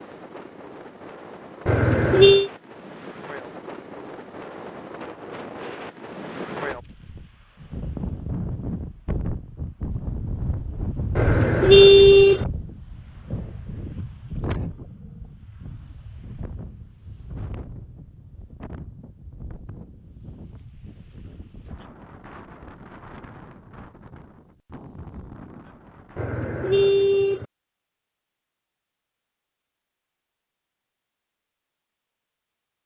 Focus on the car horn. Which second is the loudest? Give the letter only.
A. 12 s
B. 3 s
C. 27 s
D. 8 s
A.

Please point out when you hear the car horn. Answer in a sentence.
The car horn can be heard from 1.6 to 2.5 s, from 11.2 to 12.4 s and from 26.1 to 27.4 s.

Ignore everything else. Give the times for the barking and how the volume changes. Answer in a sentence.
You can't hear the barking here.